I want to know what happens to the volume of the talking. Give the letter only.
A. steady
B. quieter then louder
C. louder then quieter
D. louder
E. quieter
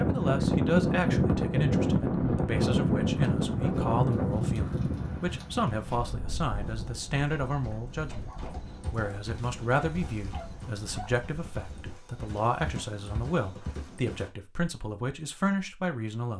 A.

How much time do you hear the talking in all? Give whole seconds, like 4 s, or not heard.
16 s.